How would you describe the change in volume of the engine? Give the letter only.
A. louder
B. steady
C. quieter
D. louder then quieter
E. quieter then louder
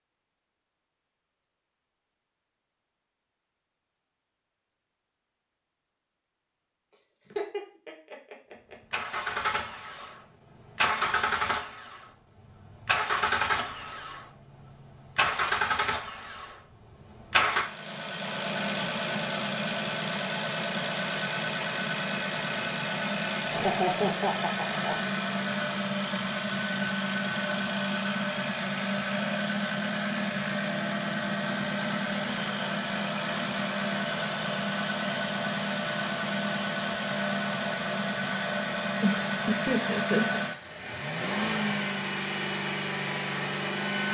B.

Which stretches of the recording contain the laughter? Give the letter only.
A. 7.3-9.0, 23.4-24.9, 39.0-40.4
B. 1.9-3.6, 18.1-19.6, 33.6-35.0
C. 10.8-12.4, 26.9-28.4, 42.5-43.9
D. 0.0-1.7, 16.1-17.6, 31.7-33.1
A.